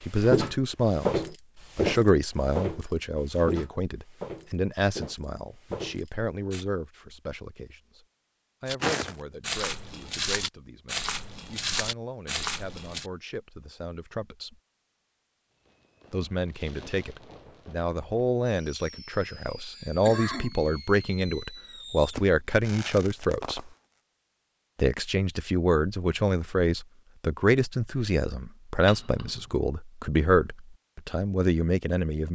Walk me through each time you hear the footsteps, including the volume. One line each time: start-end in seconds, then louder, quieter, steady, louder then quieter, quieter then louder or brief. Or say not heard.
0.0-6.7 quieter
8.7-13.1 steady.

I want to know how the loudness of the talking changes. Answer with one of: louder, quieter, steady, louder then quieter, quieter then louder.
quieter then louder.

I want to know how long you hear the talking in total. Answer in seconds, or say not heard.
29 s.